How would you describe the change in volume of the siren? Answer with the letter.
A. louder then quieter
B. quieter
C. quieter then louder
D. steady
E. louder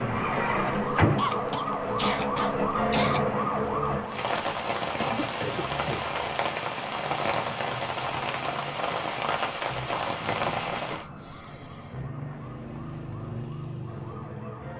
B.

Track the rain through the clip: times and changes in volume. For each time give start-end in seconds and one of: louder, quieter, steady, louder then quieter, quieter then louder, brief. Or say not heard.
0.0-11.1 louder.